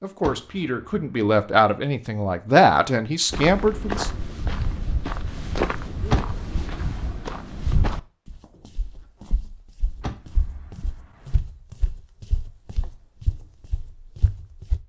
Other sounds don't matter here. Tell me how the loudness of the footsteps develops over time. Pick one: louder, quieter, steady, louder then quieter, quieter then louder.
quieter then louder.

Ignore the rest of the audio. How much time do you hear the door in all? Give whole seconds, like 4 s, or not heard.
3 s.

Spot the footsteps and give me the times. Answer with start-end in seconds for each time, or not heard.
3.3-14.8.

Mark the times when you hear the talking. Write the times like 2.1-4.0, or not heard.
0.0-4.1.